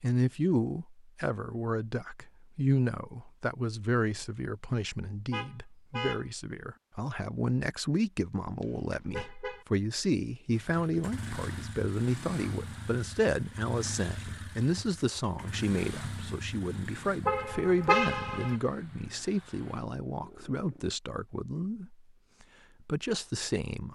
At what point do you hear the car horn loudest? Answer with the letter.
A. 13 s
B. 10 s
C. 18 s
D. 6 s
C.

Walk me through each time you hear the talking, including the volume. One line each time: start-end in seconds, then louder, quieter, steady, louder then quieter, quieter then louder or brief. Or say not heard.
0.0-21.9 steady
22.9-23.8 brief.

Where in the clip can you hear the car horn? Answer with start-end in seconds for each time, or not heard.
5.3-6.2, 8.6-9.7, 17.2-18.6.